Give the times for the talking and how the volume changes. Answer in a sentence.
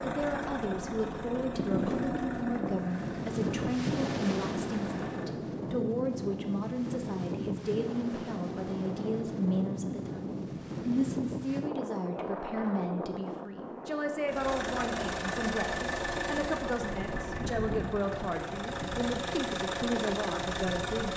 You can hear the talking from 0.1 to 21.1 s, at a steady volume.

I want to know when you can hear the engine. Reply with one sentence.
The engine can be heard from 0.0 to 5.3 s and from 14.2 to 21.1 s.